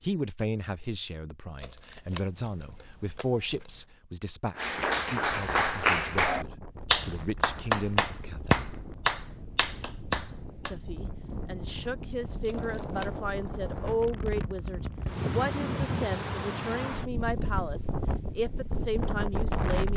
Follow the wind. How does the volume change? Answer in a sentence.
The volume of the wind goes up.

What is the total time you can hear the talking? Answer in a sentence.
You can hear the talking for 18 seconds altogether.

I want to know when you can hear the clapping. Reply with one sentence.
You can hear the clapping from 4.5 to 10.8 s.